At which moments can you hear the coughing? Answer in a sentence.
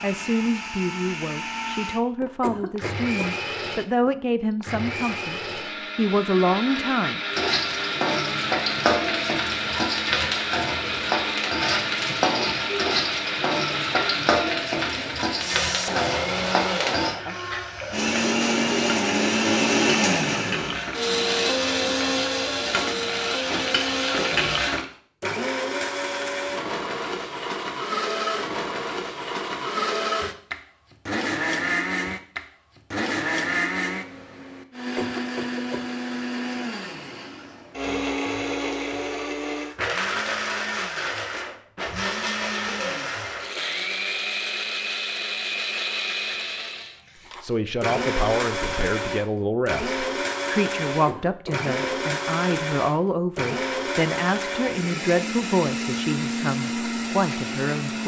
You can hear the coughing from 2.2 to 3.4 s, from 34.8 to 35.9 s and from 50.9 to 52.0 s.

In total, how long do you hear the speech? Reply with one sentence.
You can hear the speech for 18 seconds altogether.